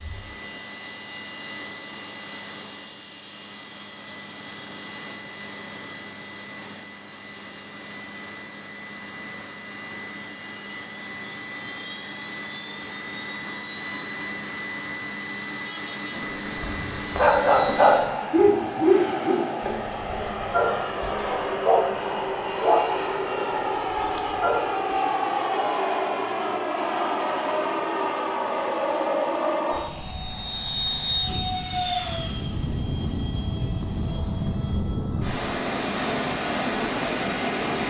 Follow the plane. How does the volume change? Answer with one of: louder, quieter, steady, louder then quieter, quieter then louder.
louder.